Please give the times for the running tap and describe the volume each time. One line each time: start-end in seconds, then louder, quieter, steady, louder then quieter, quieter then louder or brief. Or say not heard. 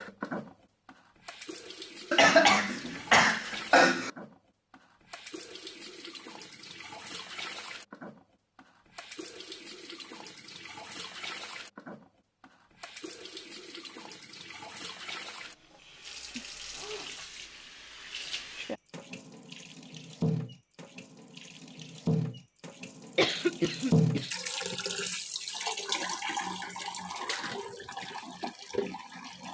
0.0-29.4 louder.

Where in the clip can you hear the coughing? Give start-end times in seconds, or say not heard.
2.1-4.1, 23.1-24.8.